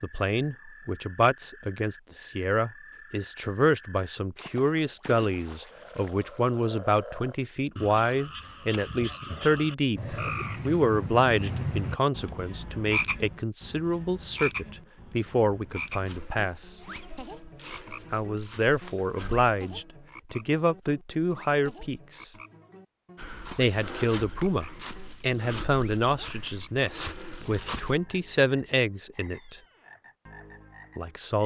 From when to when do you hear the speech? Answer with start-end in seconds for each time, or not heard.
0.0-16.8, 18.1-22.3, 23.6-29.6, 30.9-31.4.